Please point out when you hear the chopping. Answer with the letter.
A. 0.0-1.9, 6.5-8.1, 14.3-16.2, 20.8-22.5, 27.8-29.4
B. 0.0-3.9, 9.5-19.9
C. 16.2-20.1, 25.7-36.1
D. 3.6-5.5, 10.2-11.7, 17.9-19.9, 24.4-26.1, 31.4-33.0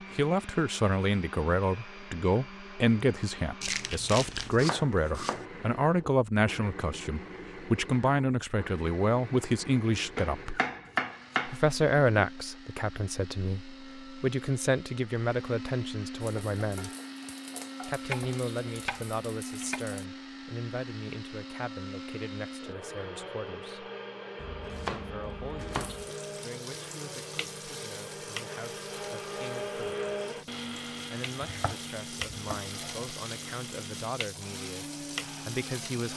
D.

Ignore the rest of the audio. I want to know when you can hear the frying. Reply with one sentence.
You can hear the frying from 16.2 to 20.1 s and from 25.7 to 36.1 s.